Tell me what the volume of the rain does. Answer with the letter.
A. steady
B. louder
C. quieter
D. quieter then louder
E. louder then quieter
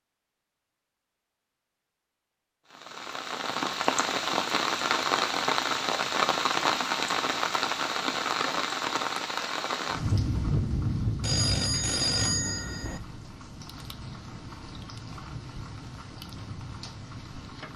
C.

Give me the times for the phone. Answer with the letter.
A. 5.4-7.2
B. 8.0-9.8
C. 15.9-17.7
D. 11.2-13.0
D.